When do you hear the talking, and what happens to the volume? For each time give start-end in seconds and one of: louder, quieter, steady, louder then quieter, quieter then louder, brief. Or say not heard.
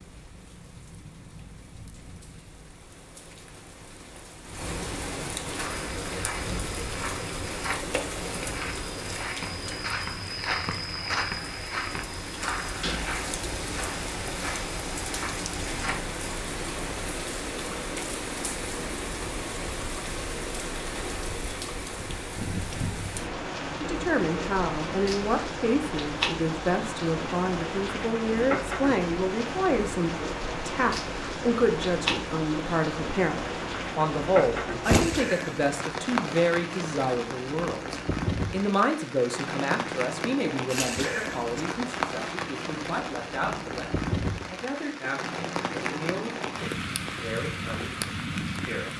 23.8-48.9 quieter.